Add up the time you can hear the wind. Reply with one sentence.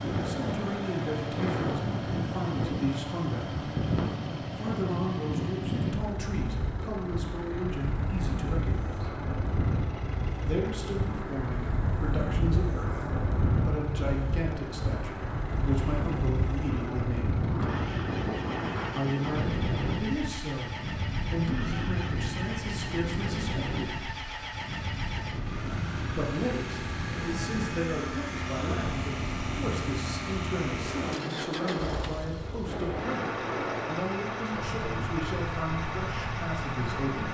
The wind can be heard for 37 seconds in total.